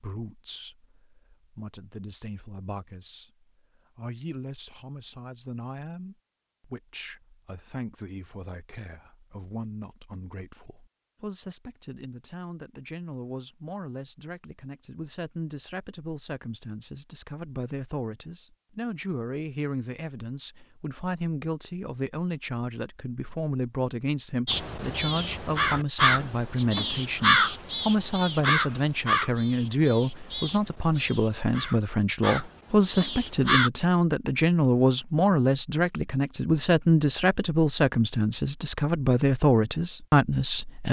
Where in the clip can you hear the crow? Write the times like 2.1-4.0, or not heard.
24.4-33.7.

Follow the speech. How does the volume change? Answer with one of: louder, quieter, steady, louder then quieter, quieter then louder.
louder.